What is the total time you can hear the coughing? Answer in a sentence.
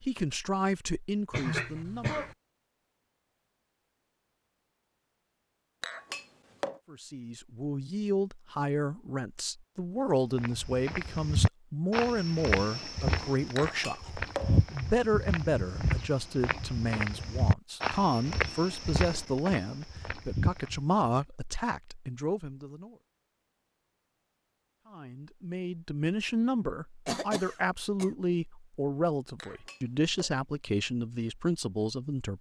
You can hear the coughing for 3 seconds altogether.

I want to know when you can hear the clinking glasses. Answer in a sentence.
The clinking glasses can be heard from 5.8 to 6.8 s, from 13.6 to 14.7 s and from 29.4 to 30.4 s.